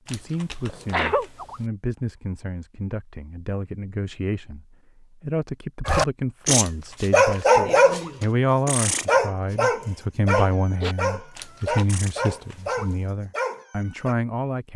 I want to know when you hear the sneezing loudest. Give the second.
1 s.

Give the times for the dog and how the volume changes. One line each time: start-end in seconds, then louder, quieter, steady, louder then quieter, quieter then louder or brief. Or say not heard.
5.8-14.2 quieter.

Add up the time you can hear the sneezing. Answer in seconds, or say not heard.
3 s.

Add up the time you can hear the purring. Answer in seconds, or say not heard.
not heard.